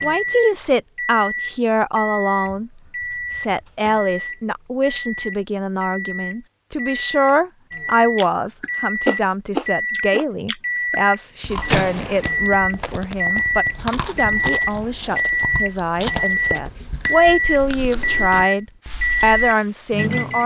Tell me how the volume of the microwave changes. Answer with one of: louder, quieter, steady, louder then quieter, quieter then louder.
louder.